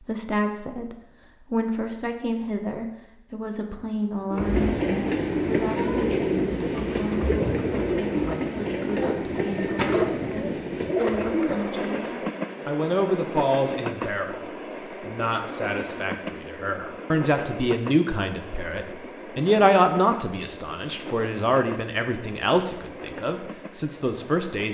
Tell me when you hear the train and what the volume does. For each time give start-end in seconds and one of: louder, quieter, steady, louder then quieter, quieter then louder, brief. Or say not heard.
4.3-24.6 quieter.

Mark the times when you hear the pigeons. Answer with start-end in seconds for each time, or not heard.
4.3-11.7.